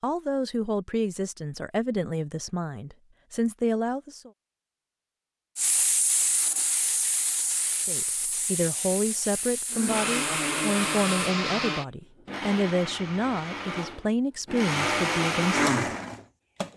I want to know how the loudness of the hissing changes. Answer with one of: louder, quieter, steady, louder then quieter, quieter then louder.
quieter.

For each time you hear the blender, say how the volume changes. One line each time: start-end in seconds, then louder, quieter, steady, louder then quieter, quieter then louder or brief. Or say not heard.
9.7-16.7 quieter then louder.